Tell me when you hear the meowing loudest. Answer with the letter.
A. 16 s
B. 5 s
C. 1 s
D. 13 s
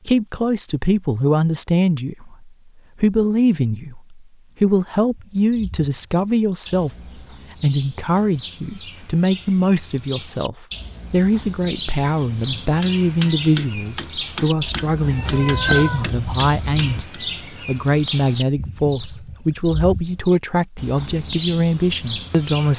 A.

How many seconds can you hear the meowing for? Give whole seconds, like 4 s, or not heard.
2 s.